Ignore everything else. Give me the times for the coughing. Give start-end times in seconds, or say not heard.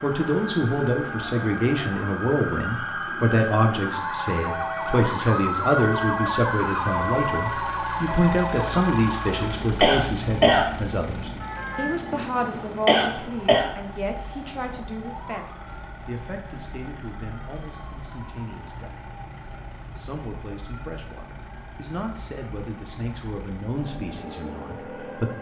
9.8-10.7, 12.8-13.7.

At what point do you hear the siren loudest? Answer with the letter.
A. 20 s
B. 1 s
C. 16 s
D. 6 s
D.